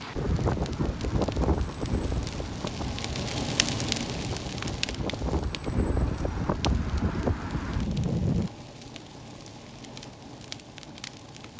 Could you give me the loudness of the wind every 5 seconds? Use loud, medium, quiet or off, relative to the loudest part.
loud, loud, off.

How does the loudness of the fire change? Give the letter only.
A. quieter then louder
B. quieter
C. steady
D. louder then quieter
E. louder
D.